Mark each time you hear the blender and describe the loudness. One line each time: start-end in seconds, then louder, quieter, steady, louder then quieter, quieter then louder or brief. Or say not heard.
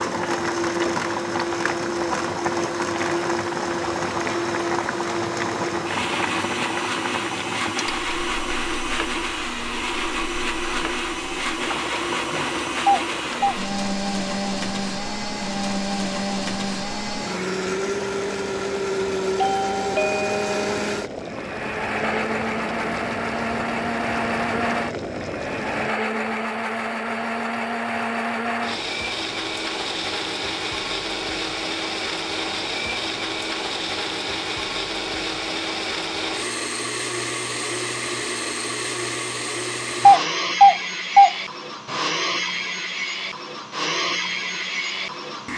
0.0-45.5 steady.